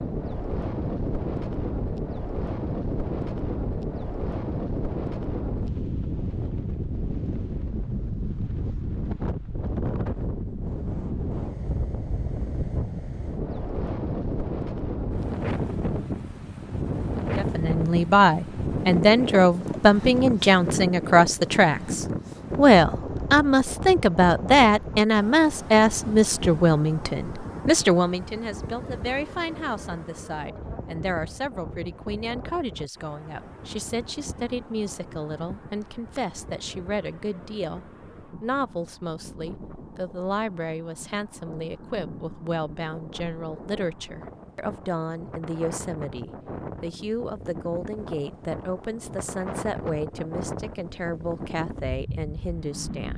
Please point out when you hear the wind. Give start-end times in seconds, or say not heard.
0.0-53.1.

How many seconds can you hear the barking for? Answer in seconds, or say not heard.
not heard.